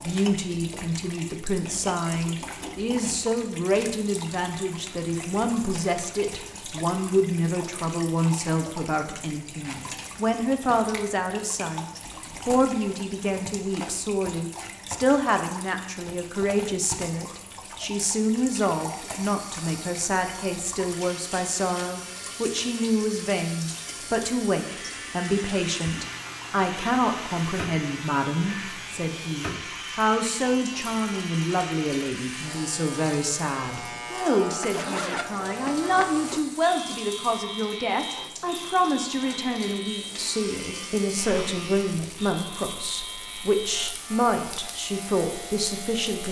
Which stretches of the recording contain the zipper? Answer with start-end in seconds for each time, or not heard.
34.5-36.4.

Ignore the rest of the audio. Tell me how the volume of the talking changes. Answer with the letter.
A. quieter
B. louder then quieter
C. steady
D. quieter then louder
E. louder
C.